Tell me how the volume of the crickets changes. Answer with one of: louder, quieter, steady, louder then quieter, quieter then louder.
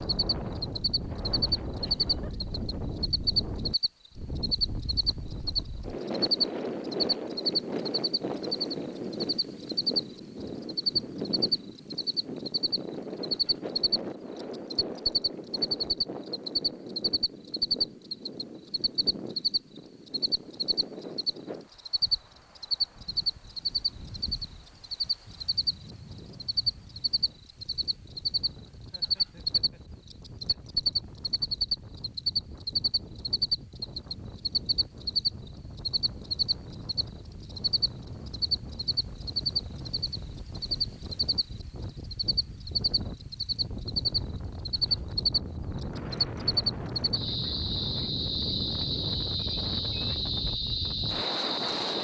steady.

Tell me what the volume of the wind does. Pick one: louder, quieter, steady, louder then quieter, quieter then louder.
quieter then louder.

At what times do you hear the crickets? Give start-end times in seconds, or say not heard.
0.0-51.9.